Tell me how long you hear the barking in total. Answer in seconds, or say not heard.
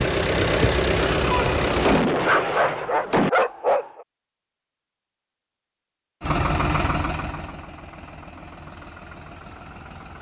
2 s.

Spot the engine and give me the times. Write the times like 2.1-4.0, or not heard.
0.0-2.0, 6.2-10.1.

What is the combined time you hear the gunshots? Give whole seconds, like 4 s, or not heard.
2 s.